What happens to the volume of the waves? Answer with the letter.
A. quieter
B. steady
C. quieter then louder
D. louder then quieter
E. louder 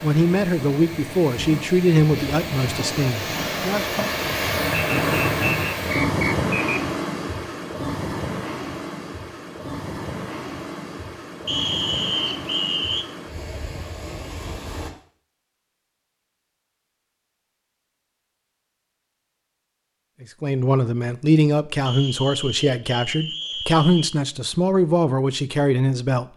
D.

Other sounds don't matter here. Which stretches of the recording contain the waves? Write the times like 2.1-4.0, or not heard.
0.0-14.9.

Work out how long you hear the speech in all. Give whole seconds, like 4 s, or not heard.
10 s.